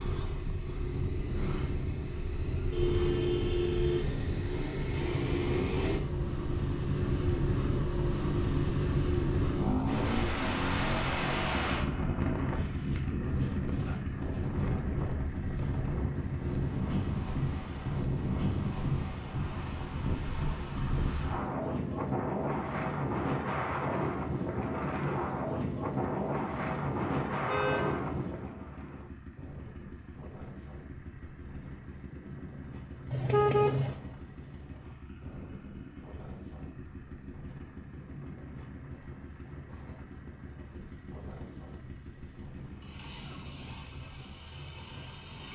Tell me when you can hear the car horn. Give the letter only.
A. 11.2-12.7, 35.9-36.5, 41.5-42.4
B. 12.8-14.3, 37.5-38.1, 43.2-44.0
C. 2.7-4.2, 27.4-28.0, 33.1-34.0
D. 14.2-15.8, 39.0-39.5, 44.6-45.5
C.